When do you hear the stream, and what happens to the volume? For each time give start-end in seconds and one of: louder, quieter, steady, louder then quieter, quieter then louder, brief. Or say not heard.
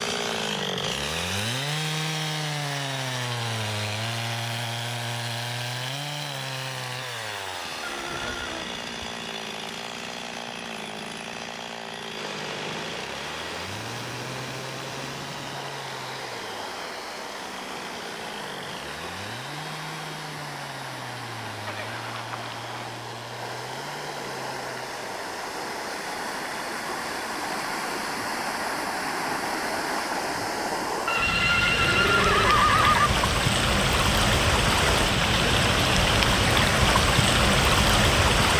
12.2-38.5 louder.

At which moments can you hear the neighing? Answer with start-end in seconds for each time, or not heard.
7.8-8.9, 21.6-23.0, 31.1-33.1.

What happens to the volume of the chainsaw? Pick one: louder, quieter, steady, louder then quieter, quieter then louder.
quieter.